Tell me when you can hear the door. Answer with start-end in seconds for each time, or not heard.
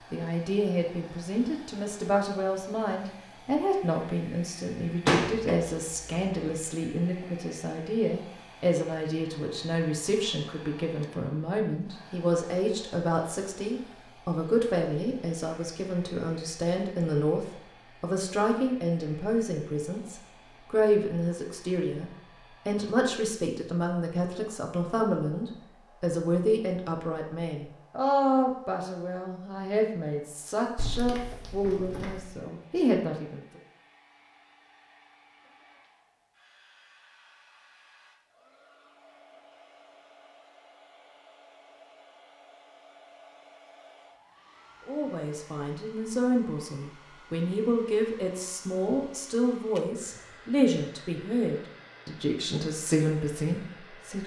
5.0-6.5, 30.8-32.2.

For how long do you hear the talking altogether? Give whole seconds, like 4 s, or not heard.
43 s.